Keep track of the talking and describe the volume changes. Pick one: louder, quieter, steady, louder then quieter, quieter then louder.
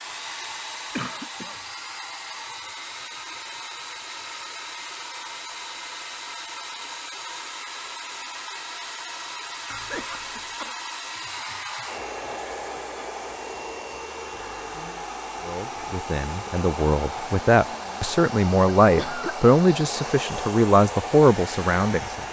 louder.